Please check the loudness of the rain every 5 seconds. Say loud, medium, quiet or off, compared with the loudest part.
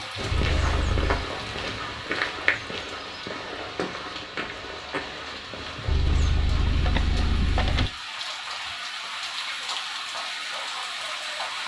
medium, loud, loud.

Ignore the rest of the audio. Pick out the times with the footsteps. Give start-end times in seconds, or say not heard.
0.1-6.3.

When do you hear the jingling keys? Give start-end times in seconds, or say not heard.
0.3-1.3, 5.8-7.9.